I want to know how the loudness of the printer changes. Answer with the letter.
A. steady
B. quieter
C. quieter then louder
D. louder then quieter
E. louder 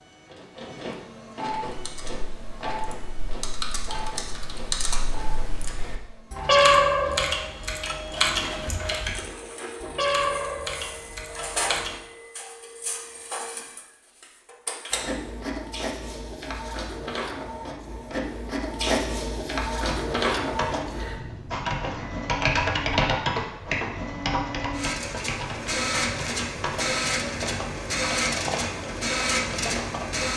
E.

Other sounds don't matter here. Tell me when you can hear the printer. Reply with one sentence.
You can hear the printer from 0.0 to 30.3 s.